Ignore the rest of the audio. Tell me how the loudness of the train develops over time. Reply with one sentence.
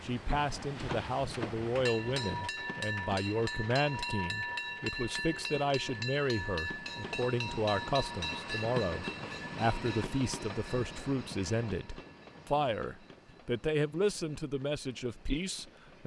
The volume of the train goes down.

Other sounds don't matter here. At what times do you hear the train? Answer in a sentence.
The train can be heard from 0.0 to 16.0 s.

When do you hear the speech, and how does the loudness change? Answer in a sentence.
You can hear the speech from 0.0 to 16.0 s, at a steady volume.